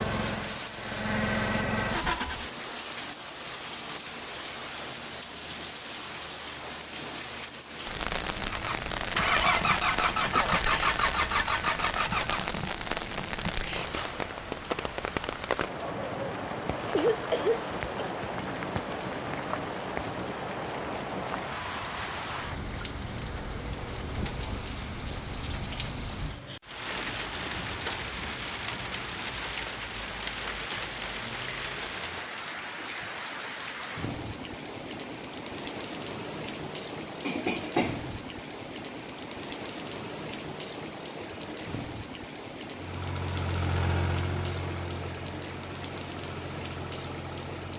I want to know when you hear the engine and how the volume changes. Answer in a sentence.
You can hear the engine briefly from 0.0 to 2.5 s; from 8.4 to 12.5 s, at a steady volume; and from 42.7 to 47.7 s, getting quieter.